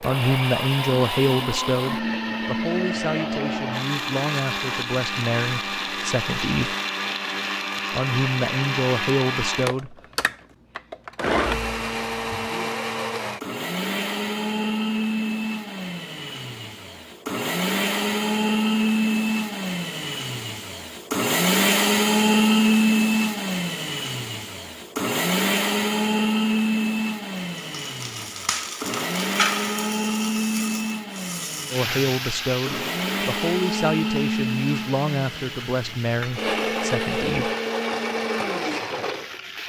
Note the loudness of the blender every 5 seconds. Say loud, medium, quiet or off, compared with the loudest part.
medium, medium, medium, loud, loud, loud, medium, medium.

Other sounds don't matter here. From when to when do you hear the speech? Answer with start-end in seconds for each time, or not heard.
0.0-6.8, 7.9-10.0, 31.7-37.5.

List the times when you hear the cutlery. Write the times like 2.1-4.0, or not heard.
not heard.